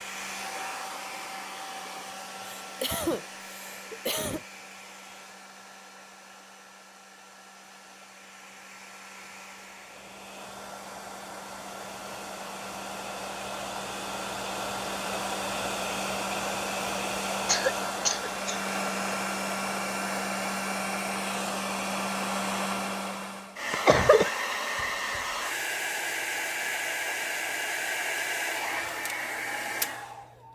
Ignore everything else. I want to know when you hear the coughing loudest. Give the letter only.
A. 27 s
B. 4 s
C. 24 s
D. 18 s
C.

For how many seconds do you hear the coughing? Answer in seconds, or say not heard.
4 s.